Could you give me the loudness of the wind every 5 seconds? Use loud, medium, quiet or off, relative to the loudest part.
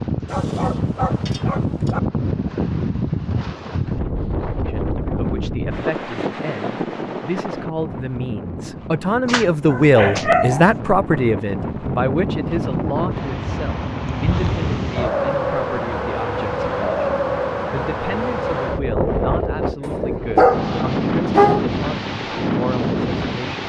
loud, medium, loud, loud, loud.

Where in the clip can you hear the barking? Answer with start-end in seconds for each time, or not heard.
0.2-2.0, 9.2-10.8, 19.8-21.6.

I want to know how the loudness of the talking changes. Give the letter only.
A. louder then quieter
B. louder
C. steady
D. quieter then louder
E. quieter
A.